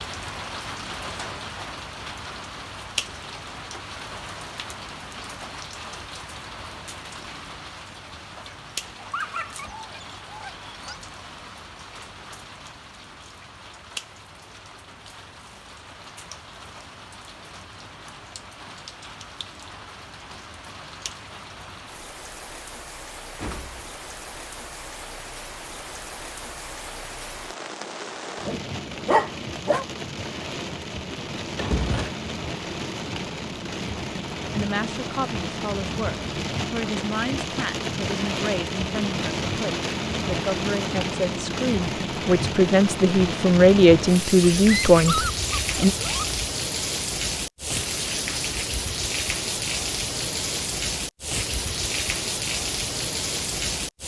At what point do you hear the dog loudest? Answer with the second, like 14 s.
29 s.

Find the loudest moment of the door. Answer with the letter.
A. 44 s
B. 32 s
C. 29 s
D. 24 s
B.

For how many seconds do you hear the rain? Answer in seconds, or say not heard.
54 s.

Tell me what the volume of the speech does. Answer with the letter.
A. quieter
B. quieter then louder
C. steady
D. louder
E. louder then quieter
D.